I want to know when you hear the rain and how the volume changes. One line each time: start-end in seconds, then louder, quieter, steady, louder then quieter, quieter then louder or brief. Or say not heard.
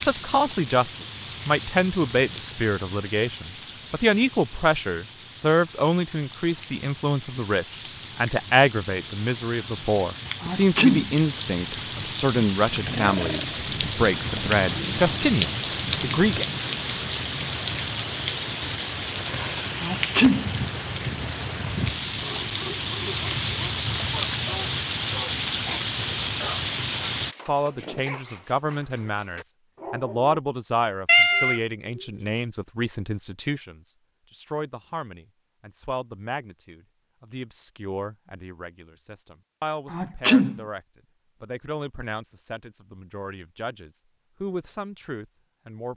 0.0-27.4 louder.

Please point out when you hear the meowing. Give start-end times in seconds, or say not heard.
12.8-13.4, 31.1-32.0.